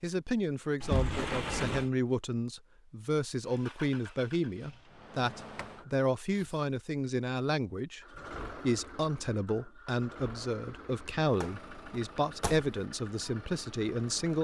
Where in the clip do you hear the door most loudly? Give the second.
1 s.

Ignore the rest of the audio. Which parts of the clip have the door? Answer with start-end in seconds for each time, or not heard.
0.8-1.9, 5.3-6.5, 11.4-12.7.